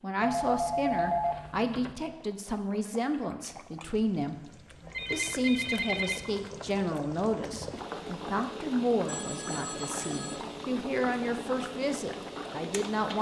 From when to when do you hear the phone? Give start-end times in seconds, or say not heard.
0.2-1.9, 4.8-6.2, 9.1-10.4.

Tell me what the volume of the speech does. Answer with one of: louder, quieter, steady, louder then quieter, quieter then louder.
steady.